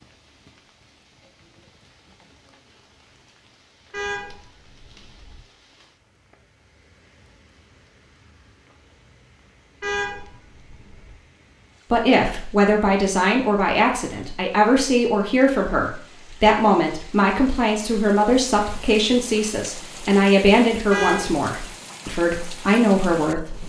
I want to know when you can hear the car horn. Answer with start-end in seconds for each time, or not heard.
3.9-5.4, 9.8-11.2, 20.9-21.4.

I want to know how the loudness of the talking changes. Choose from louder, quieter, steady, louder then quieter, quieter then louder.
steady.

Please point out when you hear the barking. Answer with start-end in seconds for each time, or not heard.
not heard.